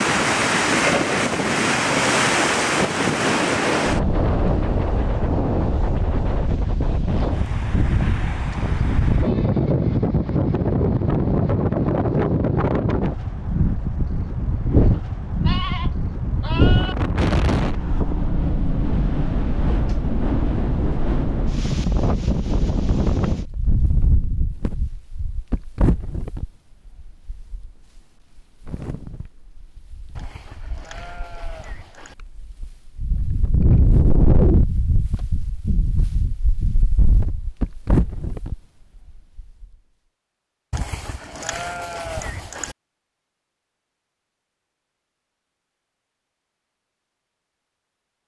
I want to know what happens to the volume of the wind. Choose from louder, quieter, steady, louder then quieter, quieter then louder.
quieter then louder.